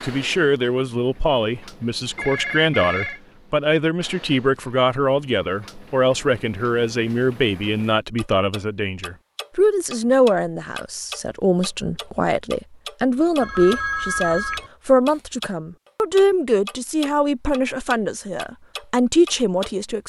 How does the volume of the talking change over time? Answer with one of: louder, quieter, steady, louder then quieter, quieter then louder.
steady.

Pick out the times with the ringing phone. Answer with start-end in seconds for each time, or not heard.
2.0-3.2, 13.4-14.7.